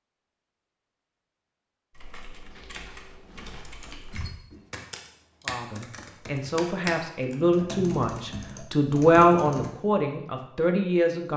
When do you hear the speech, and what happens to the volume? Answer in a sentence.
You can hear the speech from 5.5 to 11.3 s, getting louder then quieter.